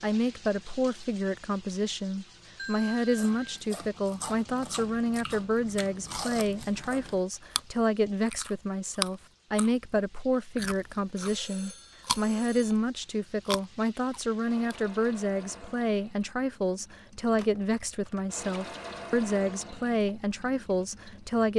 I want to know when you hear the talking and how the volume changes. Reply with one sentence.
You can hear the talking from 0.0 to 21.5 s, at a steady volume.